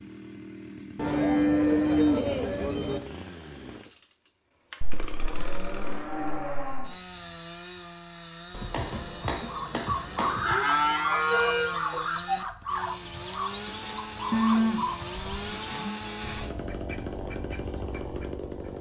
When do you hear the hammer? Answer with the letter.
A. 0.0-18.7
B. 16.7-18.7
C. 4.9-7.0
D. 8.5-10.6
D.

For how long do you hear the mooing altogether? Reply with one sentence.
You can hear the mooing for 8 seconds altogether.